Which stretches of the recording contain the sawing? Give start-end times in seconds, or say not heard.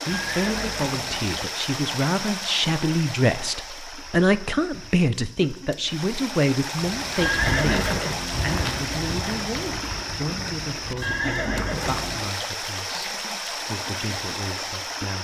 not heard.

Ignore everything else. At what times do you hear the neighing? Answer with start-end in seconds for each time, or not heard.
0.1-1.3, 7.2-8.4, 11.0-12.2.